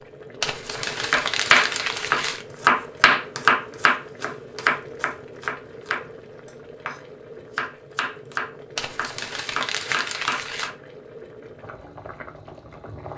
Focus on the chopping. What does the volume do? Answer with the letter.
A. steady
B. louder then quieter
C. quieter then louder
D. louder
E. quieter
E.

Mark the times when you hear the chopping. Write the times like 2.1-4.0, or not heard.
0.8-10.8.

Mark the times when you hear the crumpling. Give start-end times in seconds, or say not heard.
0.4-2.5, 8.8-10.7.